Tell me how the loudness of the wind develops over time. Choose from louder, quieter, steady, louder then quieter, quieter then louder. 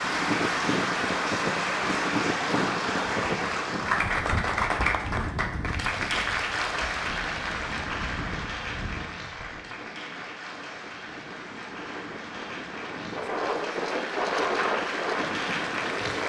quieter then louder.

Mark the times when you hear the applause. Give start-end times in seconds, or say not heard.
0.0-16.2.